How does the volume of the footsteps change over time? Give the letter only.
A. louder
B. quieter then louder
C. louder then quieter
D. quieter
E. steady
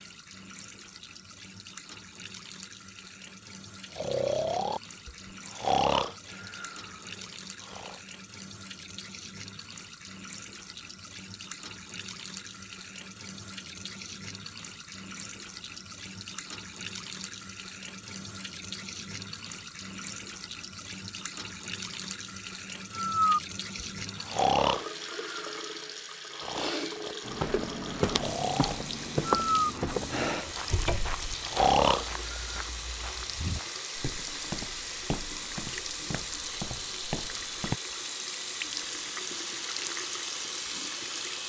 D.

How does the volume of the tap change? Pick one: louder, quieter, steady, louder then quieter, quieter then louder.
louder.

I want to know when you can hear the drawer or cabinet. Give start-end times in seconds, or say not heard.
30.7-31.3.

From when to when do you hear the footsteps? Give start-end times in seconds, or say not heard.
27.2-37.8.